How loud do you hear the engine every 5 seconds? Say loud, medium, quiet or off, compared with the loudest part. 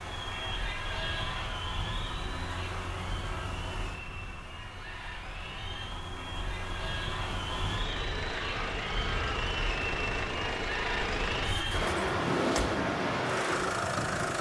medium, medium, loud.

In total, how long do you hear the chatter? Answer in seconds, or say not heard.
14 s.